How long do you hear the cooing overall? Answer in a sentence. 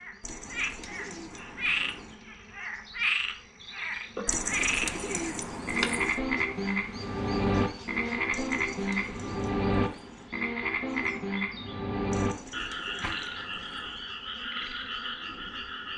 You can hear the cooing for 8 seconds altogether.